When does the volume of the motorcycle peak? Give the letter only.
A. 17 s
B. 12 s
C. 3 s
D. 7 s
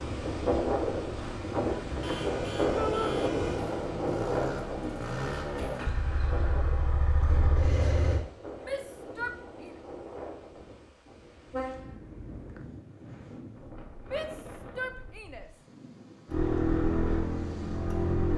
A.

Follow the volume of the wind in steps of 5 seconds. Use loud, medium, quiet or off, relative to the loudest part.
loud, quiet, quiet, quiet.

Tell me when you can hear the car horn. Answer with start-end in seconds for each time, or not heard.
2.0-3.6, 11.5-12.7.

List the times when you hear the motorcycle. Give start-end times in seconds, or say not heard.
0.0-8.2, 16.2-18.3.